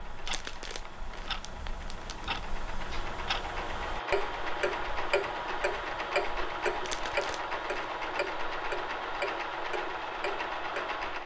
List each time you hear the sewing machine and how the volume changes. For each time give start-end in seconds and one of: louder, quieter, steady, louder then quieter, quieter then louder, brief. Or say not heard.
0.0-11.2 louder.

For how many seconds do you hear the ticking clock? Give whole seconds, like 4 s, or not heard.
11 s.